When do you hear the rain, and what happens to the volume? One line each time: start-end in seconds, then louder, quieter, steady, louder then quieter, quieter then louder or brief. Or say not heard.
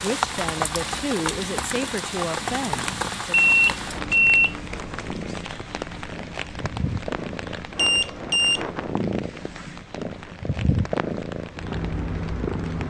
0.0-12.8 quieter.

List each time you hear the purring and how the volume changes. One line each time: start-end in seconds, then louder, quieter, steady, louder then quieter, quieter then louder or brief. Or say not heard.
0.0-12.8 louder.